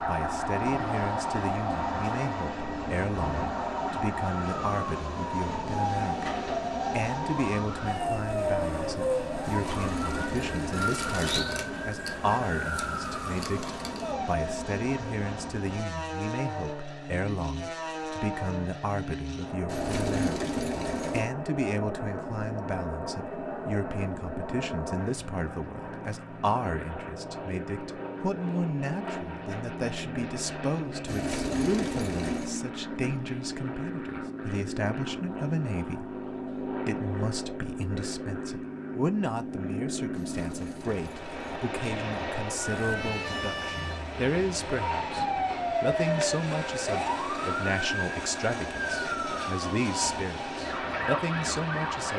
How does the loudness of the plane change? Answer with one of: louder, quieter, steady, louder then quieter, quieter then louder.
steady.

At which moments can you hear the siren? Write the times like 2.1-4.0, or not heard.
0.0-14.4, 42.6-52.1.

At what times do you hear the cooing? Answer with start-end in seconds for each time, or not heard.
9.4-11.2, 19.6-21.3, 31.1-32.6, 40.1-41.6.